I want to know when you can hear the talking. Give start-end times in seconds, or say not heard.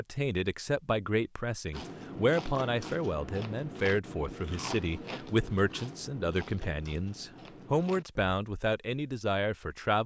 0.0-10.0.